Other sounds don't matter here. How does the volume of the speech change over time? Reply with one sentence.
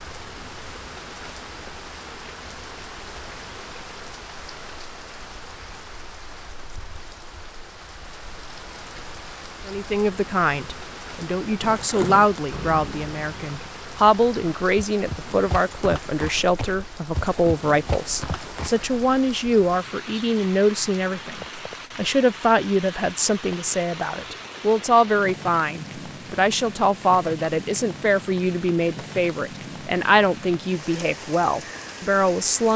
The loudness of the speech stays about the same.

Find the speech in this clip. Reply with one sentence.
You can hear the speech from 9.7 to 32.7 s.